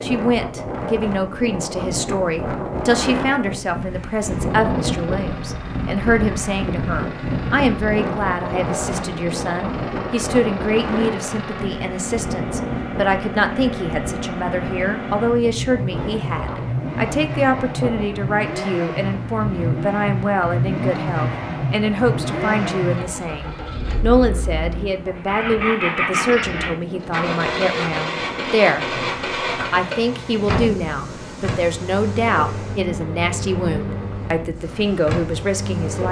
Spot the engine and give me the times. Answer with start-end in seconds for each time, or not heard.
4.5-36.0.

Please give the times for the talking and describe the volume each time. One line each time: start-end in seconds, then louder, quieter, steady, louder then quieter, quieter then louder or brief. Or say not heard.
0.0-36.0 steady.